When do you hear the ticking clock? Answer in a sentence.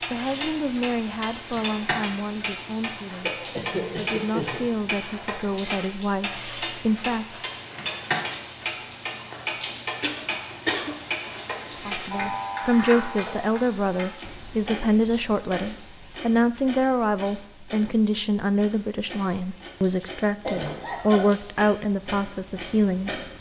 You can hear the ticking clock from 0.0 to 23.3 s.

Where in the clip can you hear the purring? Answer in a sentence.
The purring can't be heard in this clip.